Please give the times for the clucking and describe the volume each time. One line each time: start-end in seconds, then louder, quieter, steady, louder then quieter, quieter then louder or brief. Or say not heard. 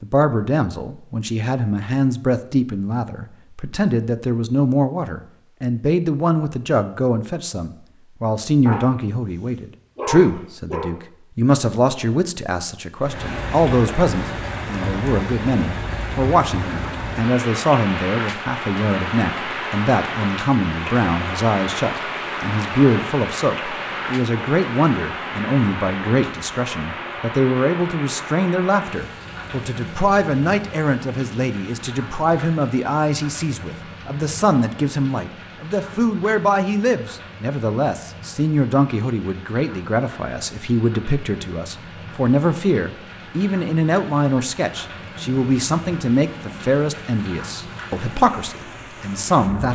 not heard.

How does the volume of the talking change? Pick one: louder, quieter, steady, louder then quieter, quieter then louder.
steady.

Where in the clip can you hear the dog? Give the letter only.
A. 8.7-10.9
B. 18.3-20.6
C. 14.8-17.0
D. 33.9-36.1
A.